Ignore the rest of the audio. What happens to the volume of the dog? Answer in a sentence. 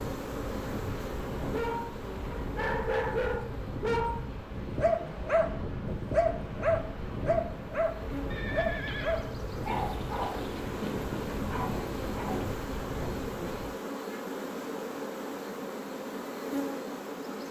The volume of the dog goes down.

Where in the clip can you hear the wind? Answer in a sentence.
You can hear the wind from 0.0 to 13.8 s.